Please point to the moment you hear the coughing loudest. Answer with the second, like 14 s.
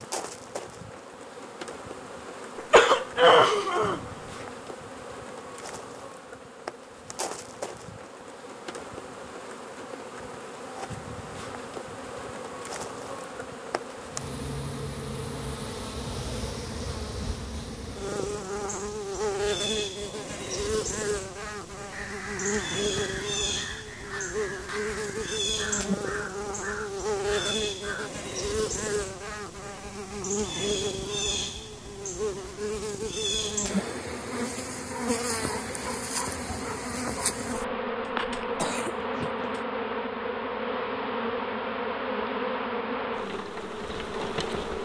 3 s.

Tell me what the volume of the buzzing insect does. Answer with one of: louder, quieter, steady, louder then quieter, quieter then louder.
louder.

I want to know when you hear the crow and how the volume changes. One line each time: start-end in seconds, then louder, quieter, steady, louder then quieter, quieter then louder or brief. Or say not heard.
21.9-28.1 steady.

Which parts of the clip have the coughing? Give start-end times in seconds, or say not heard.
2.5-4.0, 38.1-39.6.